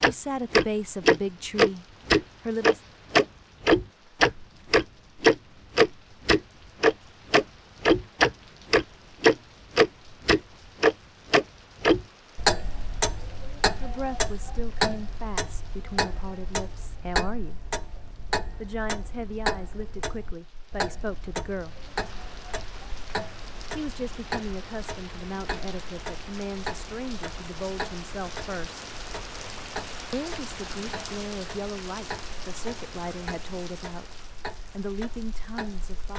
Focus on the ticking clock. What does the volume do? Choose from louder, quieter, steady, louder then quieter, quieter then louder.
quieter.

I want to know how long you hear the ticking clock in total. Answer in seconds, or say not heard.
36 s.